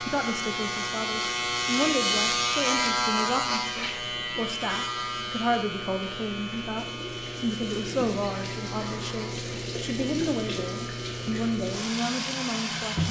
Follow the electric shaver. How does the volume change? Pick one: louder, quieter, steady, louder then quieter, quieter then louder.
quieter.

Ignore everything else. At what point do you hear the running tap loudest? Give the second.
13 s.